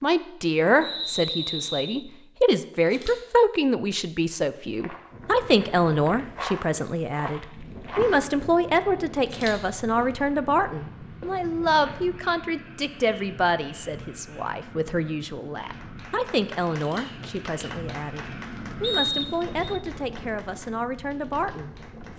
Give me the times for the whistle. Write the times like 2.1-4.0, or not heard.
0.8-2.0, 18.8-19.8.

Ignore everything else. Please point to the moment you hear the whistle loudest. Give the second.
19 s.